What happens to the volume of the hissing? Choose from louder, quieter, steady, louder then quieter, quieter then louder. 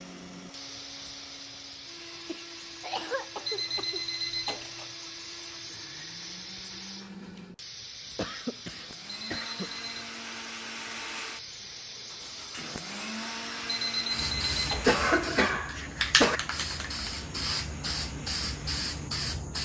louder.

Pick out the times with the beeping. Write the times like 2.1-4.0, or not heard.
3.5-4.9, 9.1-10.1, 13.7-14.9.